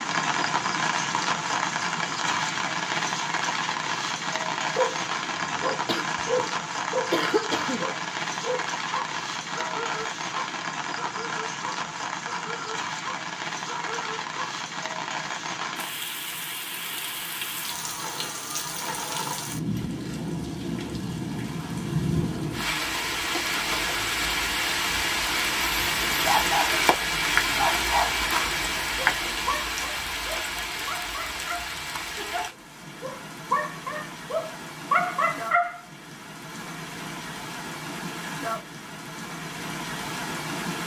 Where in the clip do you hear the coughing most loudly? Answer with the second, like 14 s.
7 s.